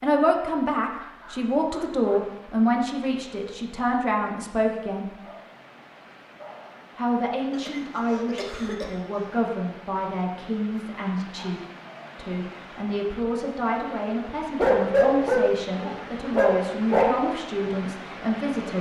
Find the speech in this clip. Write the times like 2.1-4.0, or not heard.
0.0-5.2, 7.0-18.7.